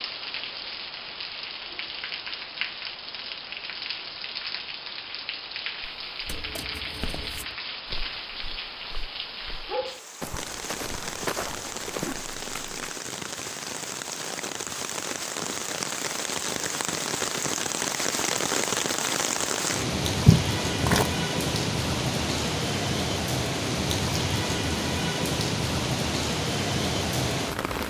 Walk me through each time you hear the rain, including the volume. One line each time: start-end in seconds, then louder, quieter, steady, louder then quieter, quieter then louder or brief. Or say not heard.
0.0-27.8 louder.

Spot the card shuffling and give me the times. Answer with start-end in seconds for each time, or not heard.
6.2-7.5, 12.0-12.9, 20.2-21.1.